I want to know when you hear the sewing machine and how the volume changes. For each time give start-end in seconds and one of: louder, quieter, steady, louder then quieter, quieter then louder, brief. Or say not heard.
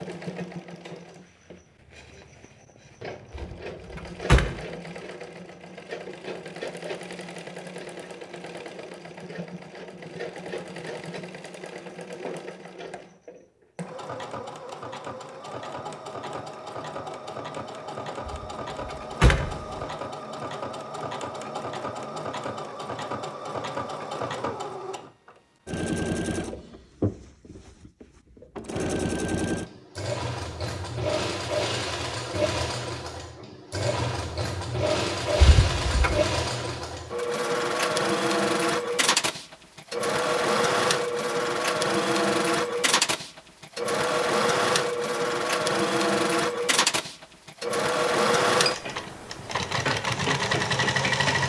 0.0-51.4 louder.